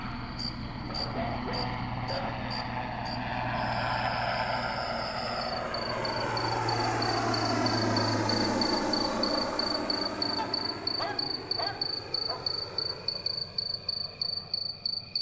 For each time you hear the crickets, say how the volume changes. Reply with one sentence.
The crickets can be heard from 0.0 to 15.1 s, getting louder.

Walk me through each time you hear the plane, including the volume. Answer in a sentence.
The plane can be heard from 0.0 to 15.1 s, getting louder then quieter.